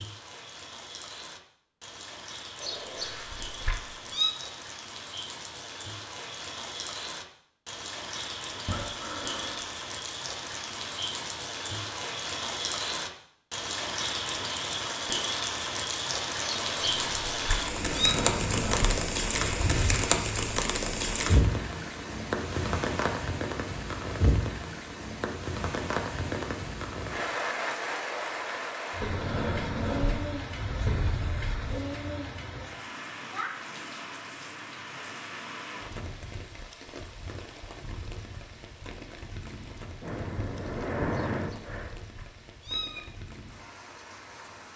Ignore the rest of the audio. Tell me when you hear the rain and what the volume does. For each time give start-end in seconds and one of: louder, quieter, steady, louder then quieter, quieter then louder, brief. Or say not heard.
0.0-44.7 louder then quieter.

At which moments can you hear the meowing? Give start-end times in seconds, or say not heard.
2.6-4.3, 16.4-18.1, 41.1-43.0.